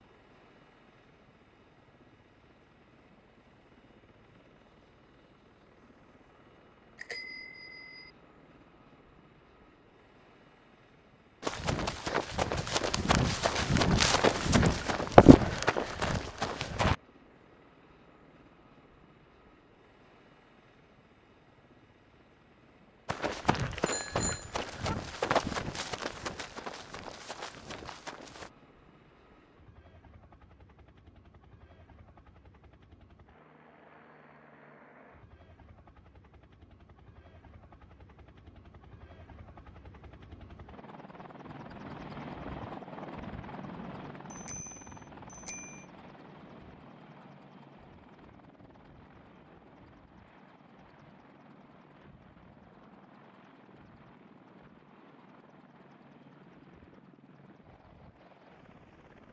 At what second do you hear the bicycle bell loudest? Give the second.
24 s.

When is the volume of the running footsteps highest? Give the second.
15 s.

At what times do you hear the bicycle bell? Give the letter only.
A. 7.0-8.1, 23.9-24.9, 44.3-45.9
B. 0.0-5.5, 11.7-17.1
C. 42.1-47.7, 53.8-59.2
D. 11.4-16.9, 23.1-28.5
A.